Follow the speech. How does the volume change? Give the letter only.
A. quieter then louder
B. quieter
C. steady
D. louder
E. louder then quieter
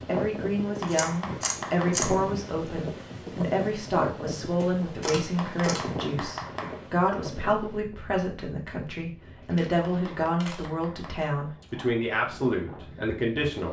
C.